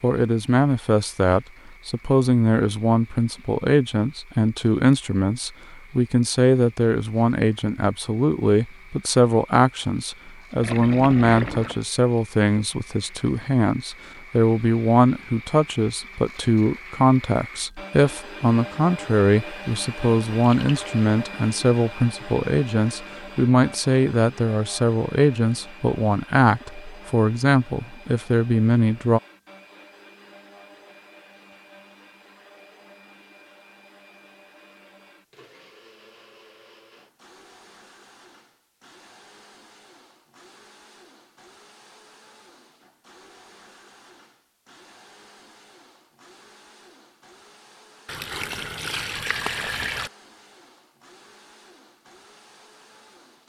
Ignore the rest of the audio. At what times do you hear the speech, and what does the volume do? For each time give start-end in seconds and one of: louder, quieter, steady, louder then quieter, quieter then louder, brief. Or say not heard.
0.0-29.2 steady.